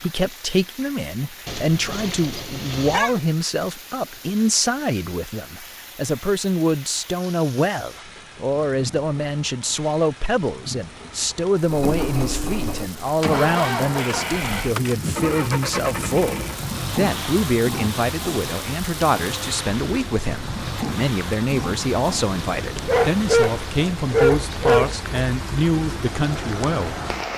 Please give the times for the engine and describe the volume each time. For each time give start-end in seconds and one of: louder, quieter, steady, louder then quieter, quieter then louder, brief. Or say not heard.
11.6-27.3 quieter.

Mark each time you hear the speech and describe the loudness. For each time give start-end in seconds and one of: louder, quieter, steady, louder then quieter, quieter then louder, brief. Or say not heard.
0.0-26.9 steady.